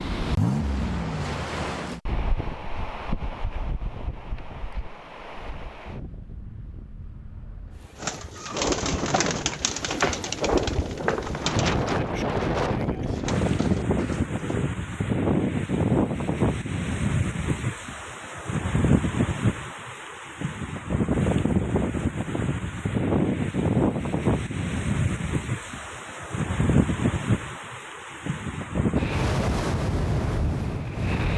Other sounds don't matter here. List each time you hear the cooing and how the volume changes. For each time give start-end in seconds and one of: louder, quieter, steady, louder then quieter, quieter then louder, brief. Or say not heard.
8.0-14.7 quieter.